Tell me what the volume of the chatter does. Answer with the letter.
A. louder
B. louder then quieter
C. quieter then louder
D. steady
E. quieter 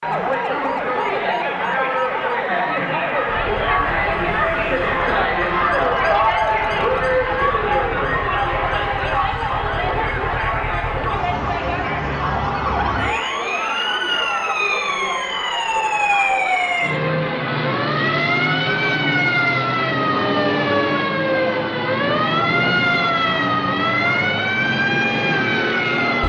E.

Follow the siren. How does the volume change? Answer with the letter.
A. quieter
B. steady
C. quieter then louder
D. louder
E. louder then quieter
D.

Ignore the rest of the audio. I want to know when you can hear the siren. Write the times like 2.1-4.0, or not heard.
0.0-26.2.